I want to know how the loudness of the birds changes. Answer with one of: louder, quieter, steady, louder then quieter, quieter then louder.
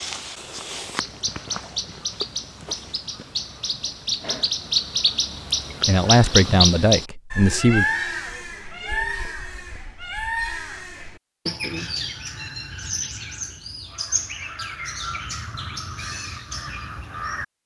louder then quieter.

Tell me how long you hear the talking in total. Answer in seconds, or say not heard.
2 s.